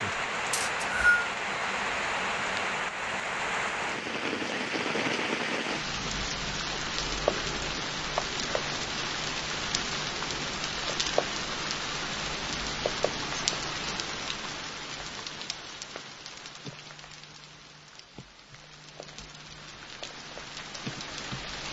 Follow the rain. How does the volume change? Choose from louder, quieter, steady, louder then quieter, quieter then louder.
quieter.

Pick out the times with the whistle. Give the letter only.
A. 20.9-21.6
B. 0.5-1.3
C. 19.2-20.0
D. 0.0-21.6
B.